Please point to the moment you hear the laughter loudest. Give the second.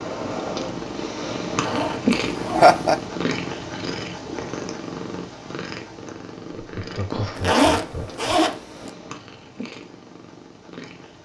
3 s.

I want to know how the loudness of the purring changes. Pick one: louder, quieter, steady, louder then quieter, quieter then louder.
quieter.